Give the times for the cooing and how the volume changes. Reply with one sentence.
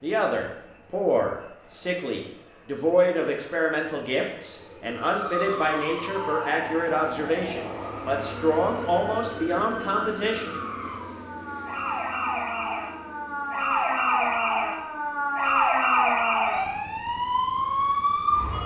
You can't hear the cooing here.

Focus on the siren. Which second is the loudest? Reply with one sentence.
The volume of the siren peaks at 16 seconds.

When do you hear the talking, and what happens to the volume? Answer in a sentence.
The talking can be heard from 0.0 to 10.6 s, at a steady volume.